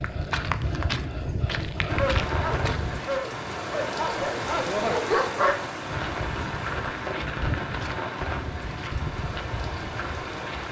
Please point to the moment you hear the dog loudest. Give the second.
5 s.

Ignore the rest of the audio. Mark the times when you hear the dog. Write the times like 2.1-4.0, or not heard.
1.9-5.7.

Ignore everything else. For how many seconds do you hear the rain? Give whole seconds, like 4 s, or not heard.
9 s.